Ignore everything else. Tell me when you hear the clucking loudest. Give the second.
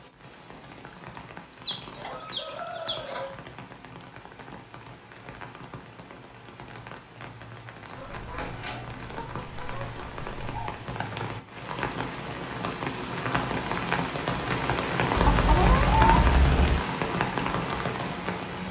16 s.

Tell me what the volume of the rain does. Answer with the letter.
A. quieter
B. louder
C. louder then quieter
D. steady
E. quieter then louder
B.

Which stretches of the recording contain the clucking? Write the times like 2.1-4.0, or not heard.
1.6-3.3, 8.0-10.7, 15.2-16.9.